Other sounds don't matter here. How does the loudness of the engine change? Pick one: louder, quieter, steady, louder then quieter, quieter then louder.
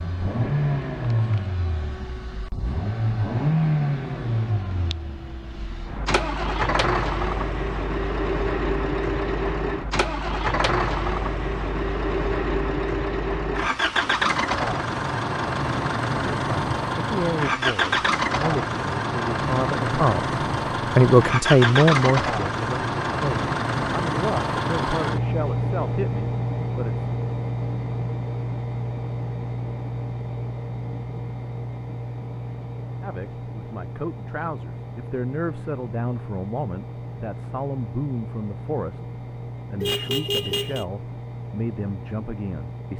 quieter.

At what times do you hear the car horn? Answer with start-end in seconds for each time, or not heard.
39.8-40.9.